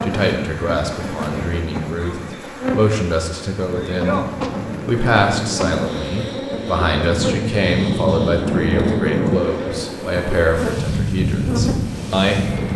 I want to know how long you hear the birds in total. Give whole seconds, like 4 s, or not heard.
not heard.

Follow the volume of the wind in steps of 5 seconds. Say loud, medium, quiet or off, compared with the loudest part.
medium, loud, loud.